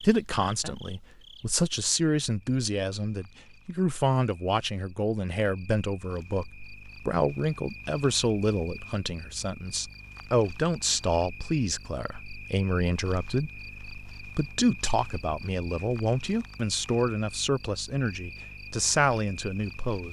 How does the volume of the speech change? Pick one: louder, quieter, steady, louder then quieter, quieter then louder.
steady.